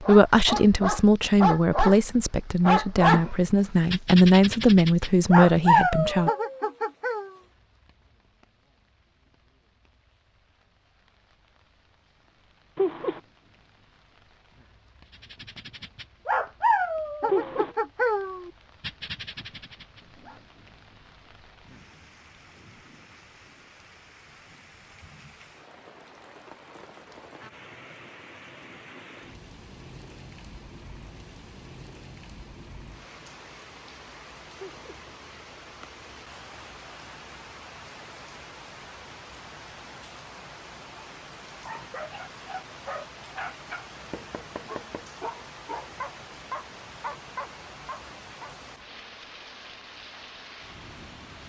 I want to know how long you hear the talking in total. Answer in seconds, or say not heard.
6 s.